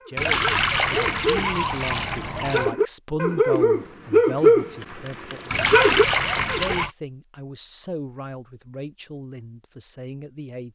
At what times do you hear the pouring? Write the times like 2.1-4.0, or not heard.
0.1-2.8, 5.5-6.9.